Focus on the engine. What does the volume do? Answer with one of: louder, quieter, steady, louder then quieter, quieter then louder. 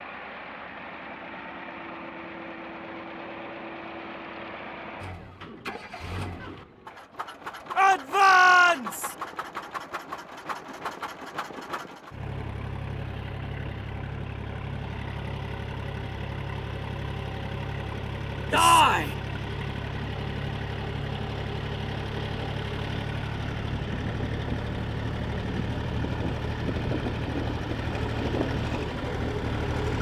louder.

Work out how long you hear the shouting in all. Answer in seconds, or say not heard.
2 s.